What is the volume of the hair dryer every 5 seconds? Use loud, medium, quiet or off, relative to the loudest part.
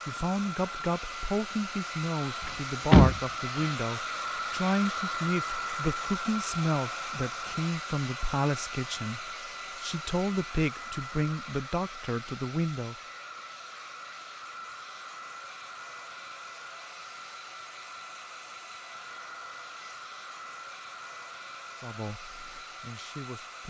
loud, loud, medium, medium, medium.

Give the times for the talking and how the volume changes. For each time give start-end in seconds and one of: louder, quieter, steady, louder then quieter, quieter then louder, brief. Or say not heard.
0.1-12.9 steady
21.8-23.6 brief.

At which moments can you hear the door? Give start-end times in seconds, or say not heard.
2.5-3.7.